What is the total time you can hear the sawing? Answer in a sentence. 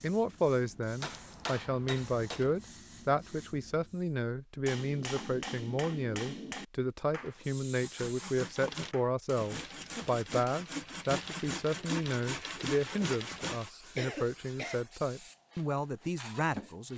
The sawing can be heard for 6 seconds in total.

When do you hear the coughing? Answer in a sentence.
You can hear the coughing from 13.9 to 14.8 s.